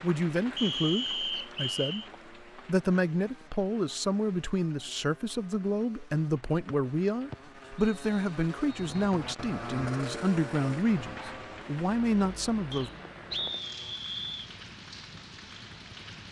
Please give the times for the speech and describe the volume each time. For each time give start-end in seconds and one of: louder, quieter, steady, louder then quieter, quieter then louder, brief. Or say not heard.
0.0-2.0 brief
2.6-12.9 steady.